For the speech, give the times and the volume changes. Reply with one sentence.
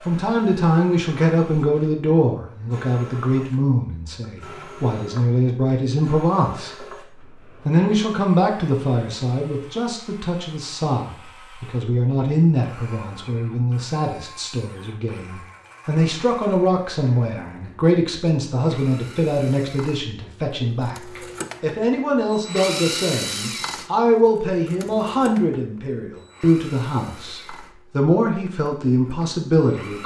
The speech can be heard from 0.1 to 6.8 s, getting quieter then louder; and from 7.7 to 30.0 s, at a steady volume.